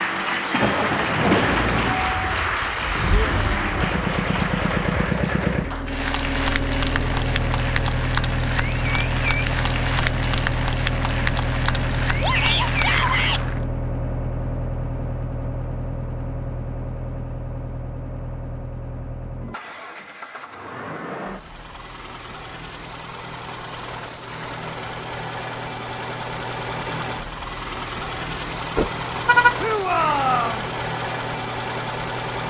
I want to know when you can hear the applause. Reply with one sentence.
You can hear the applause from 0.0 to 13.7 s.